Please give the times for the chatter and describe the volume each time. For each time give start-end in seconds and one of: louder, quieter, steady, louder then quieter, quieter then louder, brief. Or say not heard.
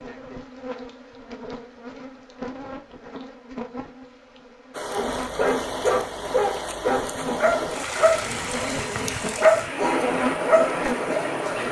not heard.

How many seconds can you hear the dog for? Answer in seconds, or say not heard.
7 s.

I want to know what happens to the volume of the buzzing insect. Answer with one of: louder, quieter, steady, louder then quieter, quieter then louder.
louder.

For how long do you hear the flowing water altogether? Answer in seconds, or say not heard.
7 s.